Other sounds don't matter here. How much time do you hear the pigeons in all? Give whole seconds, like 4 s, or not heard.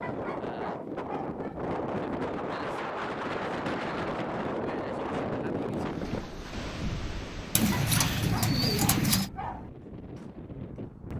2 s.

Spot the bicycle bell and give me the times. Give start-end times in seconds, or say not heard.
not heard.